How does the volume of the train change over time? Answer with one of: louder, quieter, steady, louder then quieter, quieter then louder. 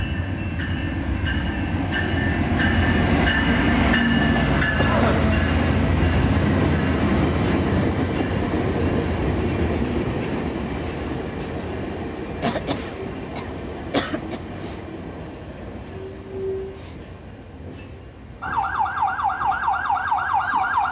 quieter.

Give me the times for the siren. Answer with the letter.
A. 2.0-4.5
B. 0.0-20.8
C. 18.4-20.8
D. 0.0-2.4
C.